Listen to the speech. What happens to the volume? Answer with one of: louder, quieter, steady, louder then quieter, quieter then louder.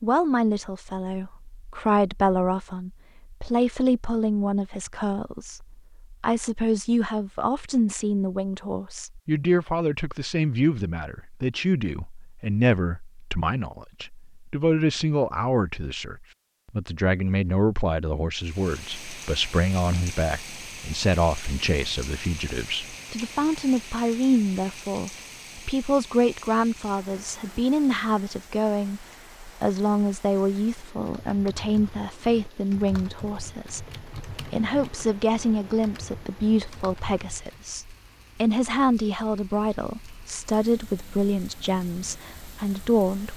steady.